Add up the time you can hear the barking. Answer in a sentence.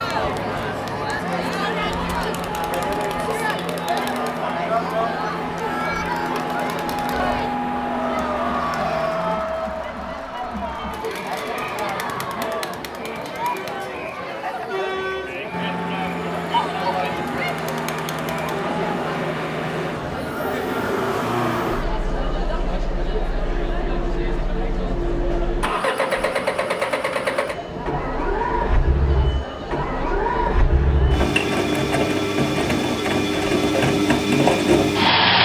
You can't hear the barking here.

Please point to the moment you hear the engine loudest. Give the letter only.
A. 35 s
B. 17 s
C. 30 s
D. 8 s
A.